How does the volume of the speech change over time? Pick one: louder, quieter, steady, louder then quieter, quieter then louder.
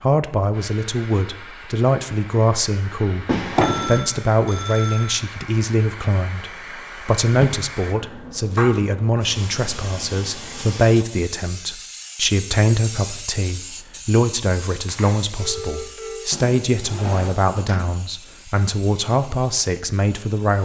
steady.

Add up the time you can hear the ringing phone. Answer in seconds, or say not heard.
3 s.